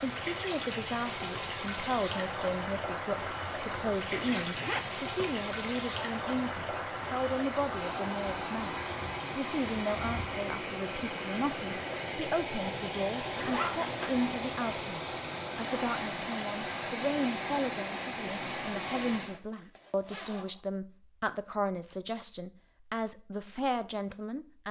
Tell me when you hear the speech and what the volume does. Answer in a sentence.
The speech can be heard from 0.0 to 24.6 s, at a steady volume.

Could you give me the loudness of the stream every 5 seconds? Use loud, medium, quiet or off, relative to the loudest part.
loud, loud, loud, loud, off.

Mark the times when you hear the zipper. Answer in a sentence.
The zipper can be heard from 4.1 to 5.5 s, from 13.3 to 14.2 s and from 19.2 to 20.6 s.